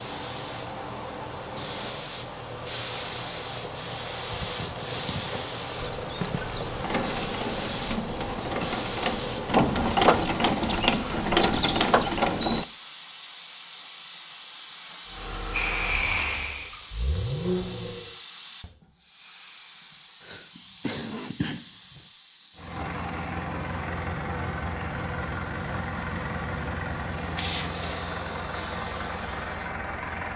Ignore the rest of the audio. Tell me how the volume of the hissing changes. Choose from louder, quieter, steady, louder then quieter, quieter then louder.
quieter.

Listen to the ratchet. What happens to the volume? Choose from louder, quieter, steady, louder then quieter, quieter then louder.
louder.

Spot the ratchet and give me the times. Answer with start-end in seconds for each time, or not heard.
4.3-12.7.